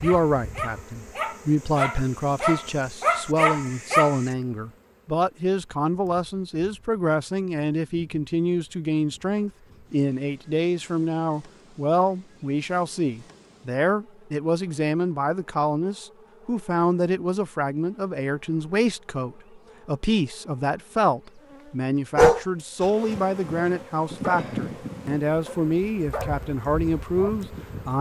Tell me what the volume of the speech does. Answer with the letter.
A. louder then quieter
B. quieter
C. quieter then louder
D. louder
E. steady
E.